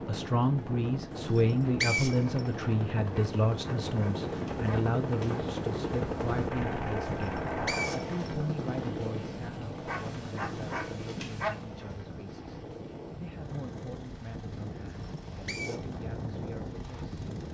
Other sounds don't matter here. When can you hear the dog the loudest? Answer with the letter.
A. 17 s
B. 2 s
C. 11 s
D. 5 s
C.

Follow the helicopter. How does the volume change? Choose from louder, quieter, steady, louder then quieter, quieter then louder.
louder then quieter.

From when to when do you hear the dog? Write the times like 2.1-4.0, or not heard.
3.1-5.4, 9.8-11.6.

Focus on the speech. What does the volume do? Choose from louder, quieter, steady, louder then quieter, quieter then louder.
quieter.